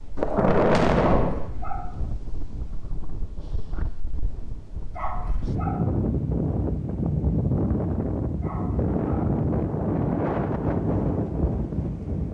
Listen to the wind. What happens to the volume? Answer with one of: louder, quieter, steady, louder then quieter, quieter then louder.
louder.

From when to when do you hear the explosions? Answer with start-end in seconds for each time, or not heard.
0.1-1.5.